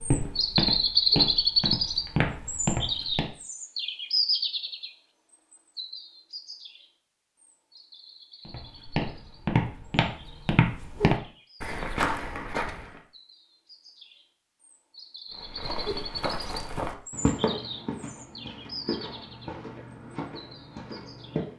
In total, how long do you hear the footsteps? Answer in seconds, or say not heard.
14 s.